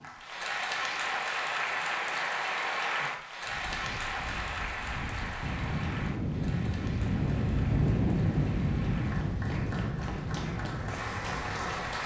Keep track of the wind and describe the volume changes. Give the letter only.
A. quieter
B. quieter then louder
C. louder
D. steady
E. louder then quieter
E.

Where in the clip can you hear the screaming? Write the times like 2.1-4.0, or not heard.
not heard.